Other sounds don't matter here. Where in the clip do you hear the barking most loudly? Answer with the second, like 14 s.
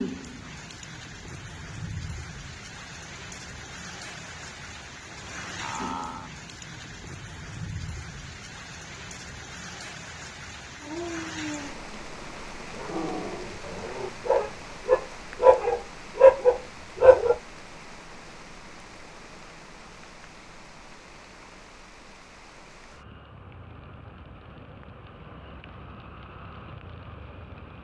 16 s.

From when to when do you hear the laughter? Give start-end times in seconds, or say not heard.
5.5-6.3.